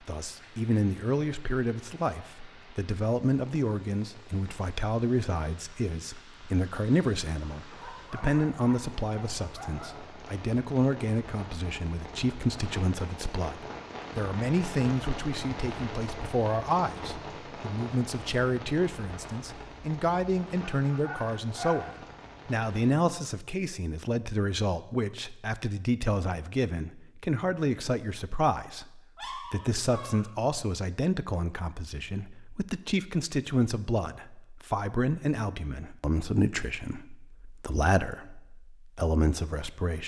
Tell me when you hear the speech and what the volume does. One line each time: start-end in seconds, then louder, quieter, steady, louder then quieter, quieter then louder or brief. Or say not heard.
0.1-40.0 steady.